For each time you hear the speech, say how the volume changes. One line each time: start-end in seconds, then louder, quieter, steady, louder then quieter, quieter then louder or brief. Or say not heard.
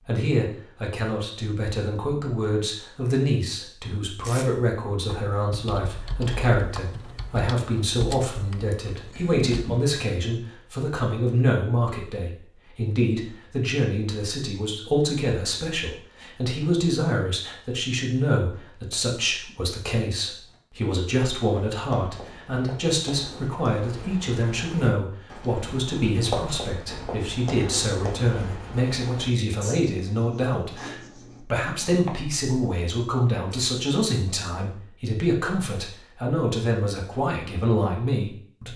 0.1-38.7 steady.